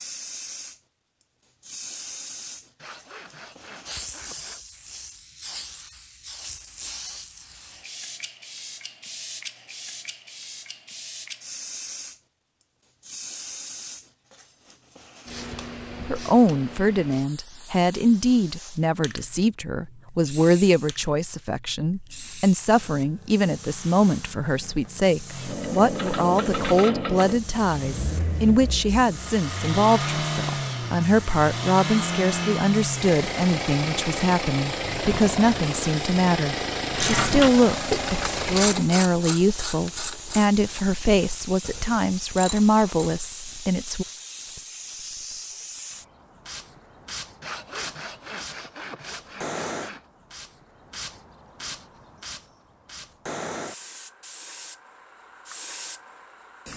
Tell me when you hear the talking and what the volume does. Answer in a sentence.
The talking can be heard from 16.1 to 44.0 s, at a steady volume.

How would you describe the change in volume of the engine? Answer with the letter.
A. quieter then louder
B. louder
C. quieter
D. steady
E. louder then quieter
D.